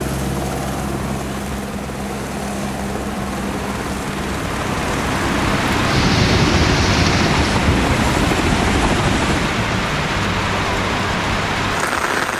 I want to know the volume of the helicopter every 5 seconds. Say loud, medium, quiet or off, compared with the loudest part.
medium, loud, off.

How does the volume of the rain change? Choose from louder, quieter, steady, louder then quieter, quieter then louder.
louder.